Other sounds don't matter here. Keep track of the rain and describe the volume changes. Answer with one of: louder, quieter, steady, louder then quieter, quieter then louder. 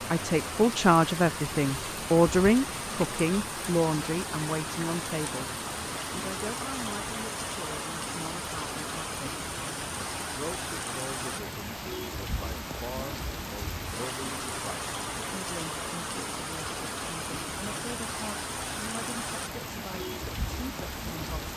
steady.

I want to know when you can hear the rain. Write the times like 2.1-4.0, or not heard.
0.0-21.5.